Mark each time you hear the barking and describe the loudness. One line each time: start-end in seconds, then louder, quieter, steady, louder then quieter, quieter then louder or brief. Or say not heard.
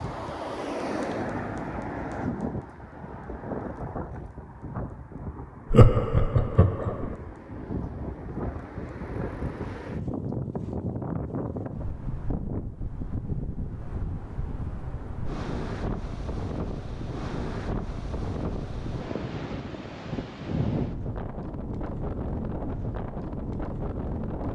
not heard.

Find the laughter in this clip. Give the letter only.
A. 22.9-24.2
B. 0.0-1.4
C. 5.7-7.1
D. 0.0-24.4
C.